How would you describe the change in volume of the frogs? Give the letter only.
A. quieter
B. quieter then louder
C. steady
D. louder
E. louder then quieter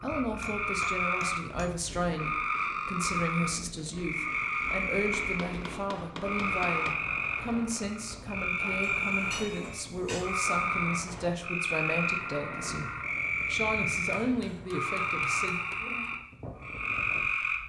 C.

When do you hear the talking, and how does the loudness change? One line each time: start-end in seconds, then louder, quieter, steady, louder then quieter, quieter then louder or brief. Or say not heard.
0.0-15.6 steady.